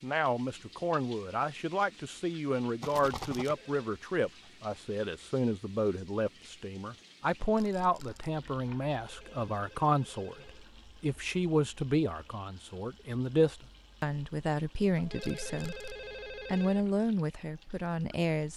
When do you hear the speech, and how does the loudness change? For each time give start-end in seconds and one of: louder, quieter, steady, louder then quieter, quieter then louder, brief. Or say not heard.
0.0-18.5 steady.